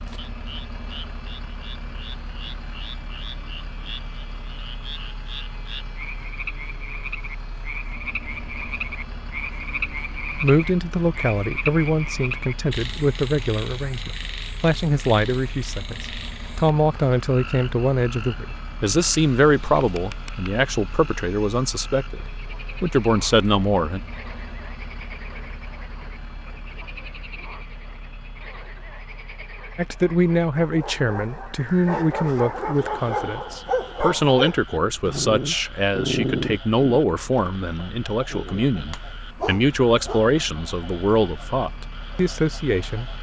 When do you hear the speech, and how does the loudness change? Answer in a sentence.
The speech can be heard from 10.3 to 24.0 s, at a steady volume; and from 29.8 to 43.1 s, at a steady volume.